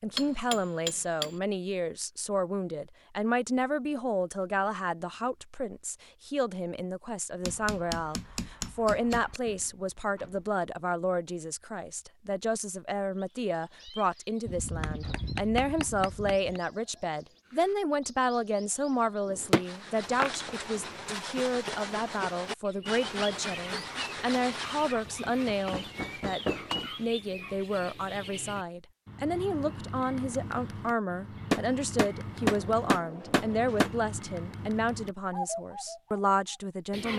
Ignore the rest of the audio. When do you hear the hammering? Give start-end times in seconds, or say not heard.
0.1-1.3, 7.5-9.4, 14.4-16.6, 19.2-21.0, 25.1-26.9, 31.5-33.9.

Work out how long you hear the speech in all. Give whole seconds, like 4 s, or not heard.
37 s.